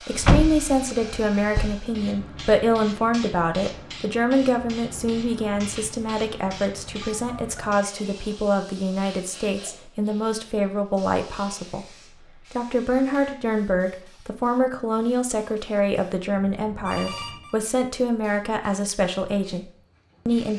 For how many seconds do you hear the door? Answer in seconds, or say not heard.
2 s.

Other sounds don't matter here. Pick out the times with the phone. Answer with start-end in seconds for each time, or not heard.
7.0-7.7, 16.4-17.6.